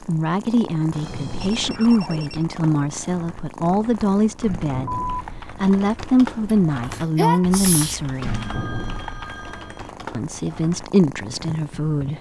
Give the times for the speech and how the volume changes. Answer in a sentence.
You can hear the speech from 0.0 to 8.3 s, at a steady volume; and briefly from 10.1 to 12.1 s.